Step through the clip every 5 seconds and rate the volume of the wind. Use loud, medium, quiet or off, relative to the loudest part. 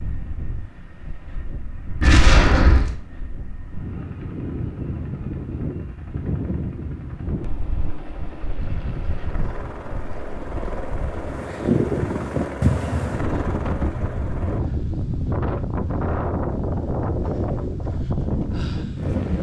medium, medium, loud, loud.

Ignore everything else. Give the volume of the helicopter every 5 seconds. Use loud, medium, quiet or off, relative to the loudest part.
quiet, medium, loud, off.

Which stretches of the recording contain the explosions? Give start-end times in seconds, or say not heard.
2.0-3.0.